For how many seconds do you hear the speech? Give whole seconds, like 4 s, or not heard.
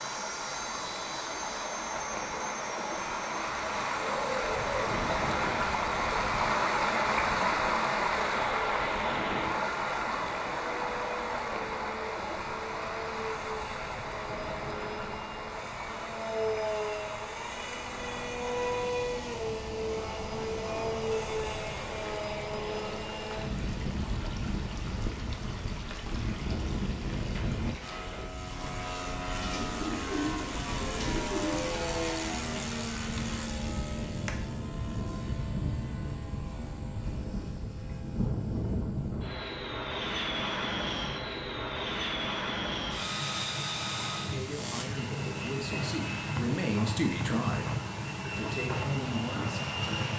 6 s.